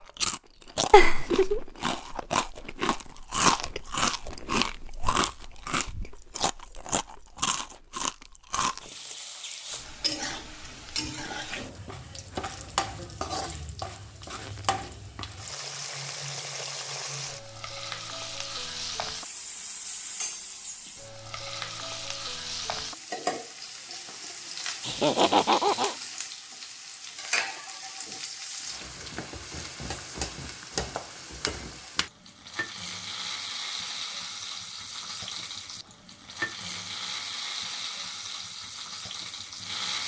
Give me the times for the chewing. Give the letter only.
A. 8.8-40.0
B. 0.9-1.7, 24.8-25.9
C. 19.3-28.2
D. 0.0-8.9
D.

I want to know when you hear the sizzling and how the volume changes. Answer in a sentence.
The sizzling can be heard from 8.8 to 40.0 s, at a steady volume.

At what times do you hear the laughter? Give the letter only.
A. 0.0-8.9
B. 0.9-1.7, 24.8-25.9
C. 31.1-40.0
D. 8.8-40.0
B.